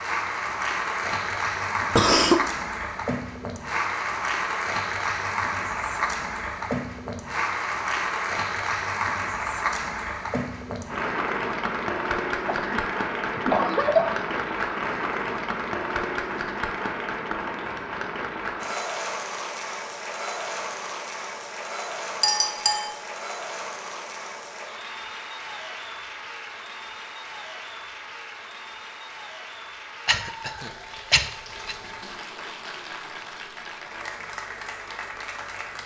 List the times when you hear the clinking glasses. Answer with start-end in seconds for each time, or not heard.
22.2-22.9.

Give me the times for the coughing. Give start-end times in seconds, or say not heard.
1.9-2.4, 12.4-14.3, 30.1-31.8.